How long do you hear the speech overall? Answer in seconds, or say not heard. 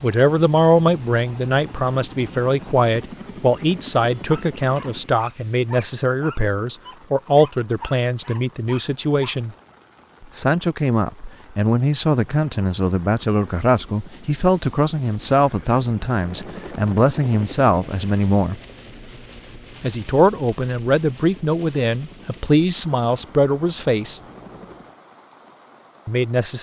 23 s.